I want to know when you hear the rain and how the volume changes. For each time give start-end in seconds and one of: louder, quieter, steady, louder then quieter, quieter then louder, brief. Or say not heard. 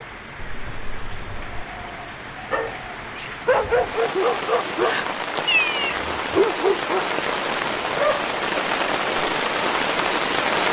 0.0-10.6 louder.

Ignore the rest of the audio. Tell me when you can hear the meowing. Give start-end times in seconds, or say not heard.
0.3-1.6, 5.5-6.0.